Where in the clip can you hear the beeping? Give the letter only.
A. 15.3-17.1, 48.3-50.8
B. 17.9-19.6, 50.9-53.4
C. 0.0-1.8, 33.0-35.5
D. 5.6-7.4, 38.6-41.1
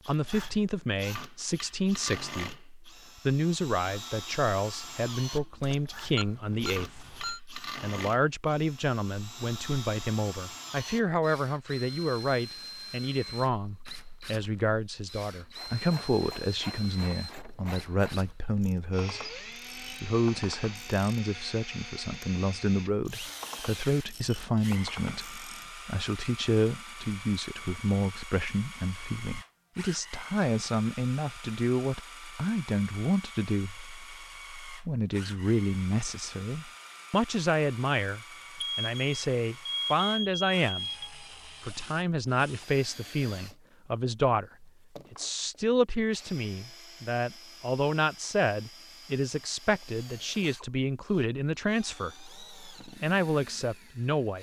D.